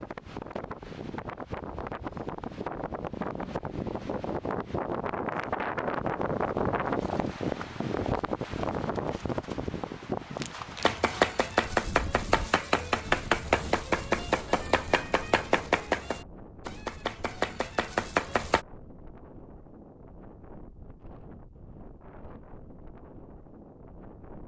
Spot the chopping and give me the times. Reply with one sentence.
The chopping can be heard from 10.8 to 18.6 s.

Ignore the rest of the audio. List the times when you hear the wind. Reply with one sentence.
You can hear the wind from 0.0 to 24.4 s.